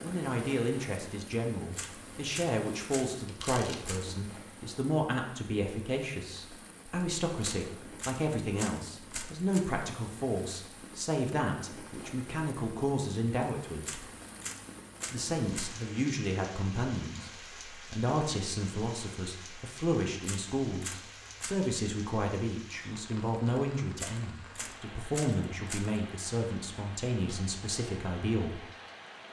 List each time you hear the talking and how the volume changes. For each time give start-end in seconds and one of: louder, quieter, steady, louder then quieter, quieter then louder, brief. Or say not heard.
0.0-14.0 steady
15.1-28.6 steady.